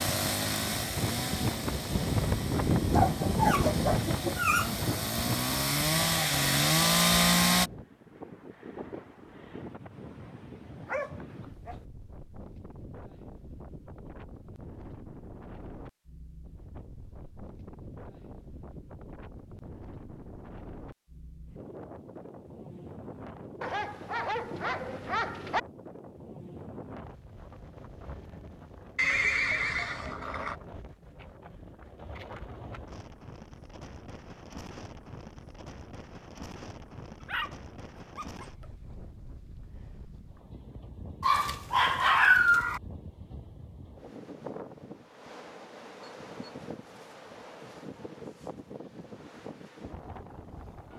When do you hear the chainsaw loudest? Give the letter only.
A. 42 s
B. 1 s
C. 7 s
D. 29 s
C.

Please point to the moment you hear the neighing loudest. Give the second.
29 s.